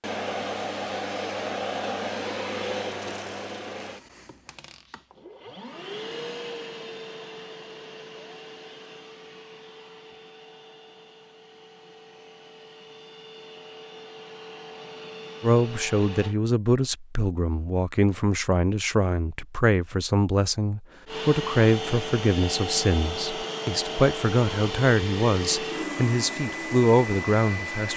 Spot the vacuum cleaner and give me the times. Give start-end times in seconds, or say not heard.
0.0-16.4, 21.1-27.9.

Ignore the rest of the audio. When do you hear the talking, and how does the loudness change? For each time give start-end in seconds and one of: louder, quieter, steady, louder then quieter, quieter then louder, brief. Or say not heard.
15.4-27.9 steady.